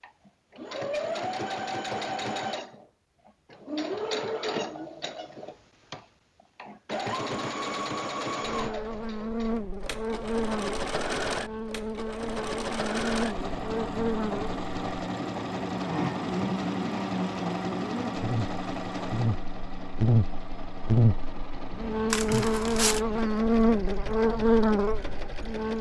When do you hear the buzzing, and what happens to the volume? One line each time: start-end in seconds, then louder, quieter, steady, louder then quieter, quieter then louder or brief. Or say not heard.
8.4-25.7 louder.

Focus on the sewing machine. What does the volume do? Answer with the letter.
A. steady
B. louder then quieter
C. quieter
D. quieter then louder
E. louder
C.